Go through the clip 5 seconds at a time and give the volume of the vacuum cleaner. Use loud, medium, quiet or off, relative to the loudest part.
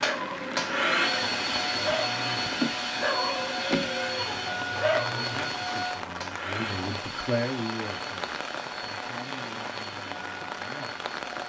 loud, medium, quiet.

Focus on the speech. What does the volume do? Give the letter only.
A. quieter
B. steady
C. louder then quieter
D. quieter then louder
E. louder
C.